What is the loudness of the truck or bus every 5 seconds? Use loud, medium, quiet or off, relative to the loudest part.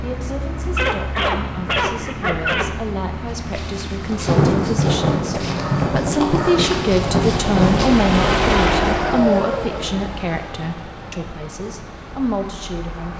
medium, loud, quiet.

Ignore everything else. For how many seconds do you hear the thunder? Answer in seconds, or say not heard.
4 s.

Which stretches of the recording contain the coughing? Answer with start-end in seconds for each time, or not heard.
not heard.